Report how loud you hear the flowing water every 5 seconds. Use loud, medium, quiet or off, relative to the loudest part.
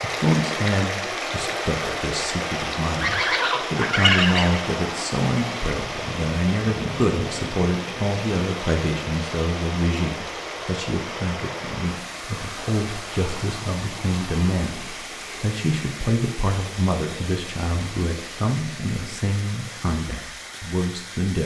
loud, loud, medium, medium, medium.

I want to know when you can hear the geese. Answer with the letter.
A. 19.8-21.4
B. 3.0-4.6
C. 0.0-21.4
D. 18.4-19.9
B.